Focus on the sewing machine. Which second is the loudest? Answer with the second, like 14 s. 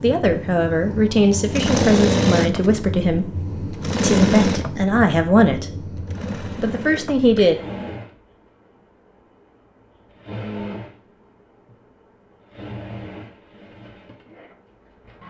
2 s.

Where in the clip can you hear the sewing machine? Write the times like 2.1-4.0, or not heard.
0.0-15.2.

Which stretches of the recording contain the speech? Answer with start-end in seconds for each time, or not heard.
0.0-7.5.